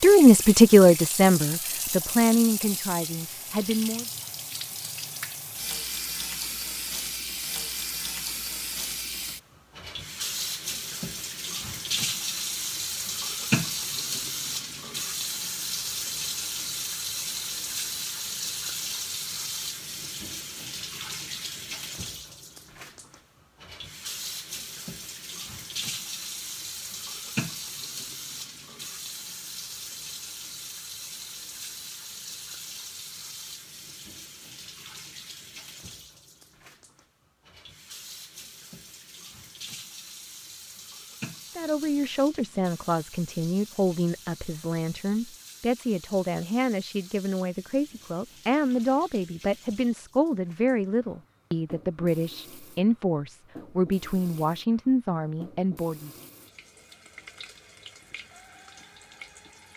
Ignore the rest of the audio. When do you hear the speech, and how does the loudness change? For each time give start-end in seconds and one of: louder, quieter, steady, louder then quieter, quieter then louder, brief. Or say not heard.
0.0-4.0 quieter
41.5-56.1 steady.